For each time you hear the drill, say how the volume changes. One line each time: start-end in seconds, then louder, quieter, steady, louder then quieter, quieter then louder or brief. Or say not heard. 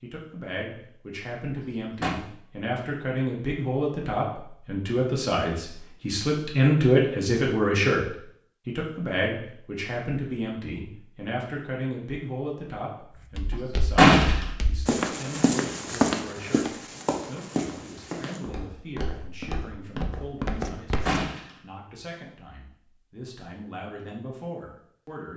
not heard.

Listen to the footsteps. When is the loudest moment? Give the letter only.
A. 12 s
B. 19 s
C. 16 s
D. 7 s
C.